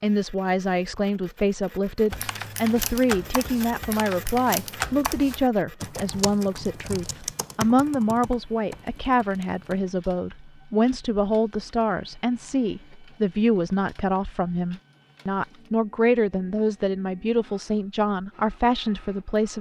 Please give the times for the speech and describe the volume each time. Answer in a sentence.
The speech can be heard from 0.0 to 19.5 s, at a steady volume.